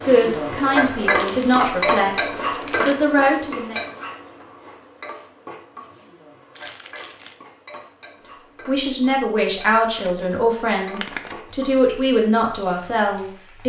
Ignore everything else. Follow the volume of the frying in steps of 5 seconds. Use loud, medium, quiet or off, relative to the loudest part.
loud, quiet, quiet.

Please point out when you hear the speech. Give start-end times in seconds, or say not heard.
0.1-3.8, 8.7-13.6.